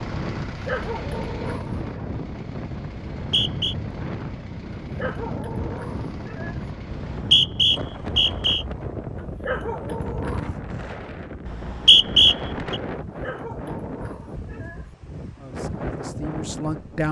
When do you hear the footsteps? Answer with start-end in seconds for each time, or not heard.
not heard.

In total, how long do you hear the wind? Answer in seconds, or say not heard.
17 s.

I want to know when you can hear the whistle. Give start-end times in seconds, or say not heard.
3.1-3.8, 6.9-8.7, 11.4-12.8.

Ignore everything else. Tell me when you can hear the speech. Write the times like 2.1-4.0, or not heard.
15.4-17.0.